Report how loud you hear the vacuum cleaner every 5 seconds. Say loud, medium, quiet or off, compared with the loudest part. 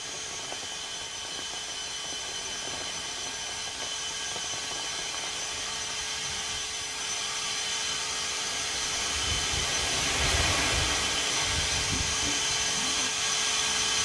medium, loud, loud.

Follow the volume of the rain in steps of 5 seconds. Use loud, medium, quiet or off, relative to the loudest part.
quiet, medium, loud.